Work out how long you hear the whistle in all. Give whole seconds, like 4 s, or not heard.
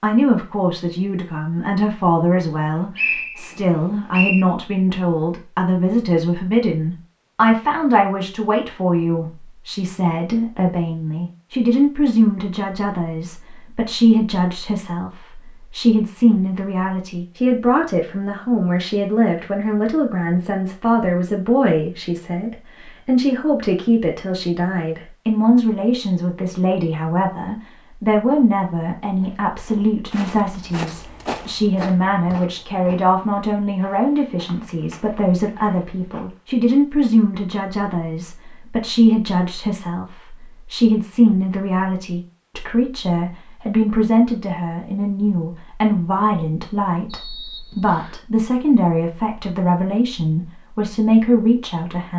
3 s.